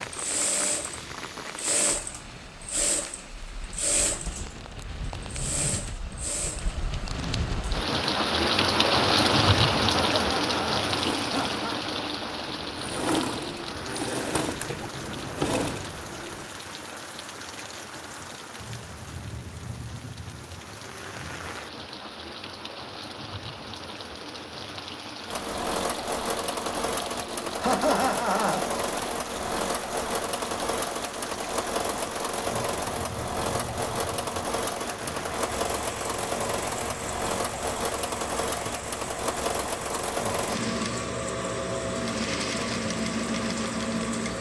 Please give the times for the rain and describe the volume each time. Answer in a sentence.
You can hear the rain from 0.0 to 44.3 s, getting quieter.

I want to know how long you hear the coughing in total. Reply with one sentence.
You can hear the coughing for 3 seconds altogether.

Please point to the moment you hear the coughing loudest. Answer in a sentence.
The volume of the coughing peaks at 28 seconds.